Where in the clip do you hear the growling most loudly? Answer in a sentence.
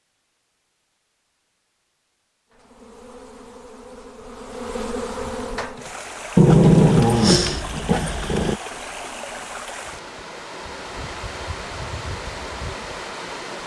The volume of the growling peaks at 7 seconds.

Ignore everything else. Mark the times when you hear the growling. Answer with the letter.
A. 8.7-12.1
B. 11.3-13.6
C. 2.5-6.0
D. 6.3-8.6
D.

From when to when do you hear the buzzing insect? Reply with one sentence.
The buzzing insect can be heard from 2.5 to 6.0 s.